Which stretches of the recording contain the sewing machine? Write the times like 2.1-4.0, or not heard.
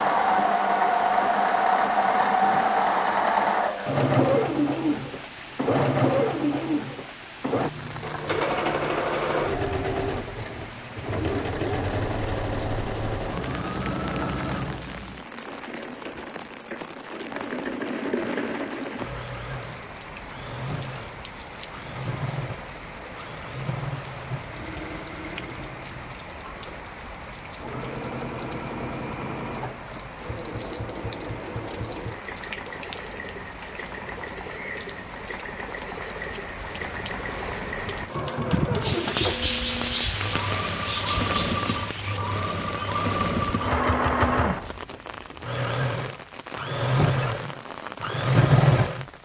0.0-49.0.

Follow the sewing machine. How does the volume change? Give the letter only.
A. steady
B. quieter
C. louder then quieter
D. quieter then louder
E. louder
D.